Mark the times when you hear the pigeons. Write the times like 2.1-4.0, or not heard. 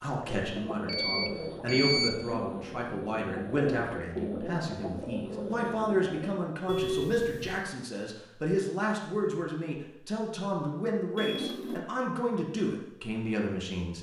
0.2-6.3.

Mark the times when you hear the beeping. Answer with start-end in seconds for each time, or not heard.
0.8-2.4, 6.7-7.7, 11.2-11.8.